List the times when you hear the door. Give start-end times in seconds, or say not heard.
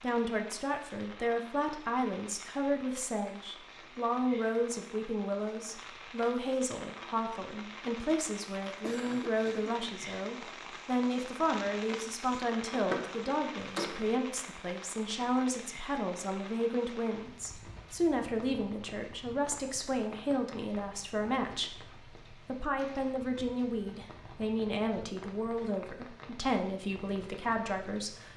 12.7-14.2.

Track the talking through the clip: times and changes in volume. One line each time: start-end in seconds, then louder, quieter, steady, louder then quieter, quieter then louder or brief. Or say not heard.
0.0-28.3 steady.